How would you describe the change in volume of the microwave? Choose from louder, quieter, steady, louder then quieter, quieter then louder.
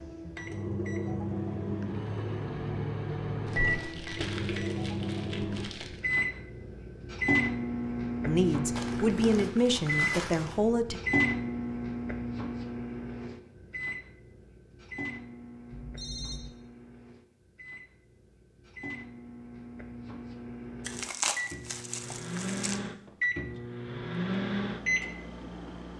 quieter then louder.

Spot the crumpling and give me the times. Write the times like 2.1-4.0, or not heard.
3.5-6.0, 8.8-10.6, 20.9-22.8.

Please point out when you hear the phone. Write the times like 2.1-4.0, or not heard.
15.7-16.5.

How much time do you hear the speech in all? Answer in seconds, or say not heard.
3 s.